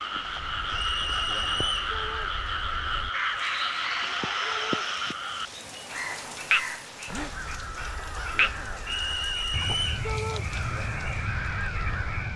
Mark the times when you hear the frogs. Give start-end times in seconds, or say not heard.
0.0-12.3.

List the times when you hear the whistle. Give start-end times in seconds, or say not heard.
0.8-1.9, 8.8-10.0.